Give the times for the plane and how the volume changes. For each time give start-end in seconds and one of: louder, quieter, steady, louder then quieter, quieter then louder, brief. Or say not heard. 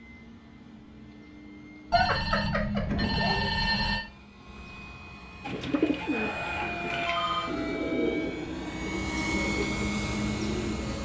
0.0-10.9 louder.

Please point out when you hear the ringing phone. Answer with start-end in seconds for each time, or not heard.
1.9-4.0, 6.1-7.5.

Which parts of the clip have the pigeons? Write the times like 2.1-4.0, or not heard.
5.4-10.9.